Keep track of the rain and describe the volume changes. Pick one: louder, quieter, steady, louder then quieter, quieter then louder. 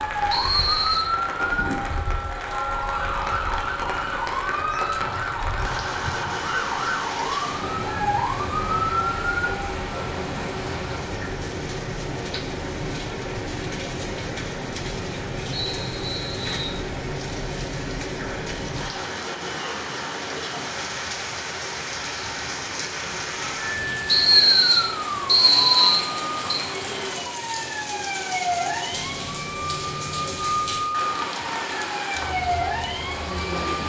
steady.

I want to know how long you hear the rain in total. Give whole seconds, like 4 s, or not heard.
34 s.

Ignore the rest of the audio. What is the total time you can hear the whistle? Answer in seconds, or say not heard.
5 s.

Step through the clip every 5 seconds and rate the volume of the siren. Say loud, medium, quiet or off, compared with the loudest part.
loud, loud, off, off, loud, loud, loud.